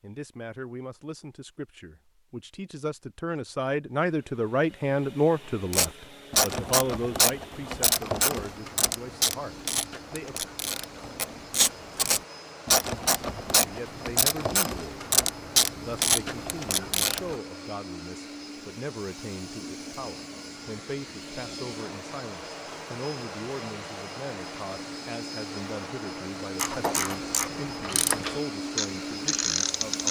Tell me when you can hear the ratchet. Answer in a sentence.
You can hear the ratchet from 5.7 to 17.4 s and from 26.6 to 30.0 s.